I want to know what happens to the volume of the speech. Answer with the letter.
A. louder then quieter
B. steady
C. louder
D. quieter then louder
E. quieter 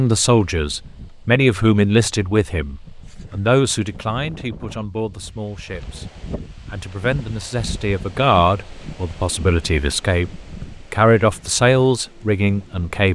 D.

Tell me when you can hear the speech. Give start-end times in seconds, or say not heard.
0.0-13.0.